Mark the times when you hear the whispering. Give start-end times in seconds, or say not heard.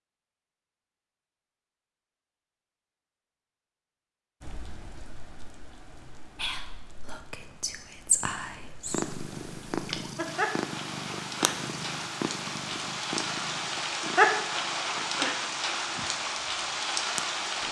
6.3-9.1.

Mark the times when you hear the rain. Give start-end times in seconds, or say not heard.
4.4-17.6.